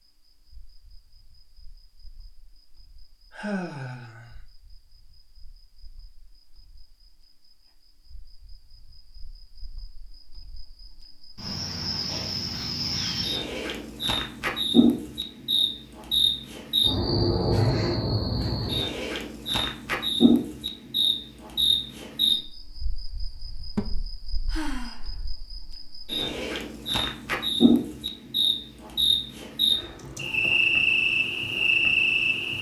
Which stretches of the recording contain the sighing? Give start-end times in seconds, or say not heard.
3.3-4.3, 12.5-13.4, 24.5-25.1.